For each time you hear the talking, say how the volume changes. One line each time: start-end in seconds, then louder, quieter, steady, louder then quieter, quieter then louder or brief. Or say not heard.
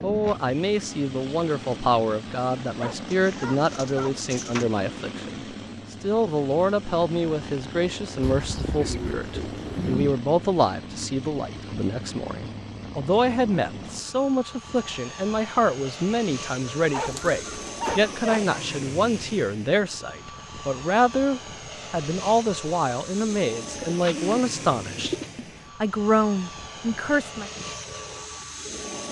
0.0-27.5 steady.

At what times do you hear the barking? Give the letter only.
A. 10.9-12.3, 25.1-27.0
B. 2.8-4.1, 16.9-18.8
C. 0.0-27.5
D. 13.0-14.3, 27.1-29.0
B.